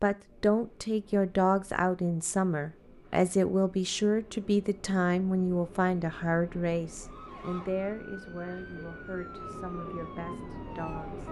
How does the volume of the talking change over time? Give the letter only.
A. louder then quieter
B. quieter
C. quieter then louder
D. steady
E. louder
B.